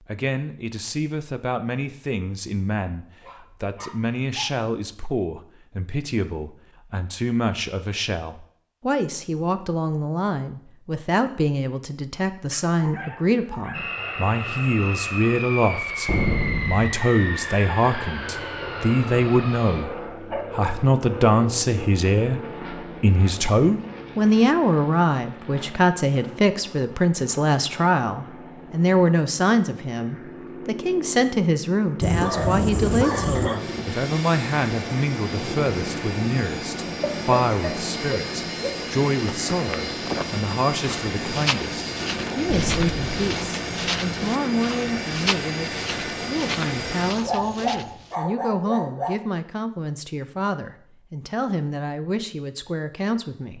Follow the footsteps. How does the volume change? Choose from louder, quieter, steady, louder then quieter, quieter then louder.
steady.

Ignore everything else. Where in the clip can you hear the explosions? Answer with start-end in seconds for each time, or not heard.
16.1-16.9, 42.5-43.3.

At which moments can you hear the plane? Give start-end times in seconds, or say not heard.
13.7-47.1.